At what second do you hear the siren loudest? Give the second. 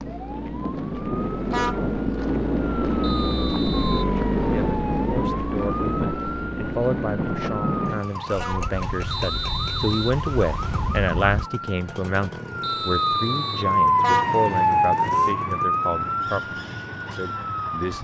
14 s.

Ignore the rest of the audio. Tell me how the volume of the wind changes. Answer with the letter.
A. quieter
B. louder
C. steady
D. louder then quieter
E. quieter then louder
A.